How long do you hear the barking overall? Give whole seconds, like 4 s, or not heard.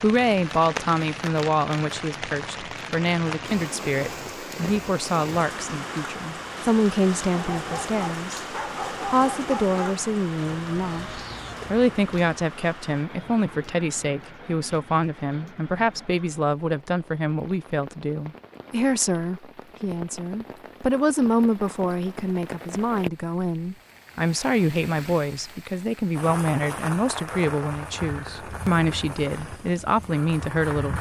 3 s.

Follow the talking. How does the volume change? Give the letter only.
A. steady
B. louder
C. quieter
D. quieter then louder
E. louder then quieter
A.